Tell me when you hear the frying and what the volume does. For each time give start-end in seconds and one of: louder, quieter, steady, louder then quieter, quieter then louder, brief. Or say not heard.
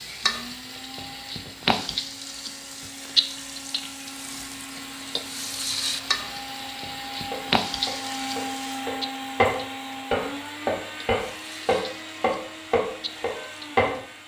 0.0-14.2 quieter.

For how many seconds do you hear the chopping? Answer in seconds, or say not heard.
7 s.